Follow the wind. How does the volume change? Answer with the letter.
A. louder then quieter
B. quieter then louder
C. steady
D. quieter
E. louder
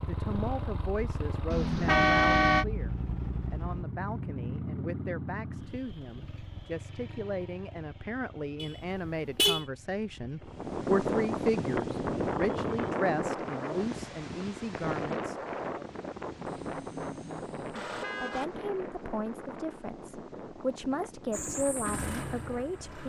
D.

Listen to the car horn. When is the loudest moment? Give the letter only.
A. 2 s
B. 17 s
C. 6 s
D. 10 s
A.